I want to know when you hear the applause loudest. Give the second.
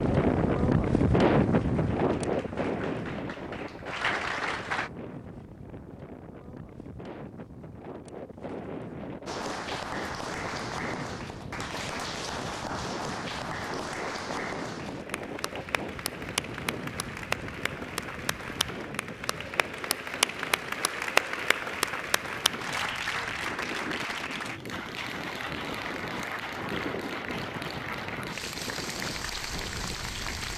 21 s.